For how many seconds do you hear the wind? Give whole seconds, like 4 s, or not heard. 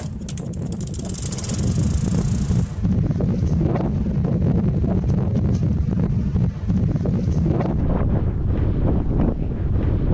10 s.